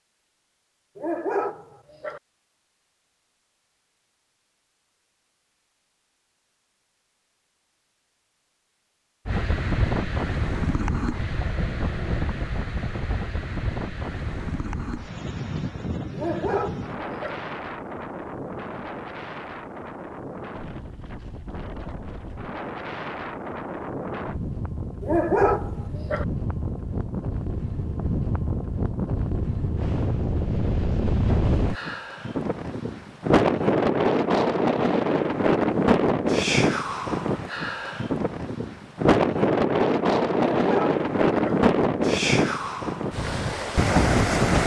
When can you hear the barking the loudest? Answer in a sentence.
The loudest moment of the barking is at 25 seconds.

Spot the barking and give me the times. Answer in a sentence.
The barking can be heard from 0.9 to 2.2 s, from 16.1 to 17.4 s, from 25.0 to 26.2 s and from 40.4 to 41.6 s.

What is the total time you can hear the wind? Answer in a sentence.
The wind can be heard for 35 seconds in total.